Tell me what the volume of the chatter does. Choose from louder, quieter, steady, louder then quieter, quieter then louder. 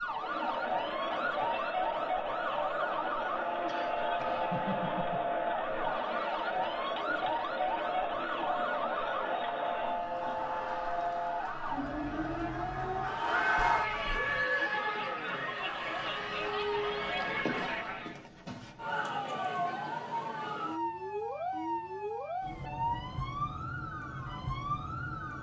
steady.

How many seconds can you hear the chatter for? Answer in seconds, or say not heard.
18 s.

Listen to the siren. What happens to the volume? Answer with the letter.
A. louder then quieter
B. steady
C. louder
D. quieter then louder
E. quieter
B.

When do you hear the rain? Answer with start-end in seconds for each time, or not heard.
not heard.